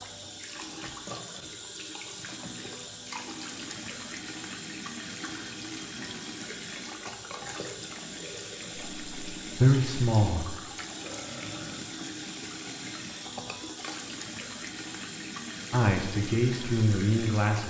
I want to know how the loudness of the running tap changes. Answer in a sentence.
The volume of the running tap stays about the same.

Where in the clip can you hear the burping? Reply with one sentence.
You can hear the burping from 11.0 to 11.9 s.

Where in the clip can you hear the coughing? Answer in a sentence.
You can't hear the coughing here.